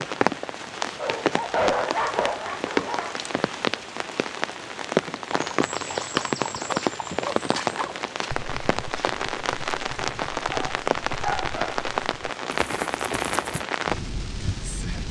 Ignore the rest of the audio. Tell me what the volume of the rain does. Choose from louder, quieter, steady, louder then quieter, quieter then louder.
steady.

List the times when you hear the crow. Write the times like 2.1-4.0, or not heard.
not heard.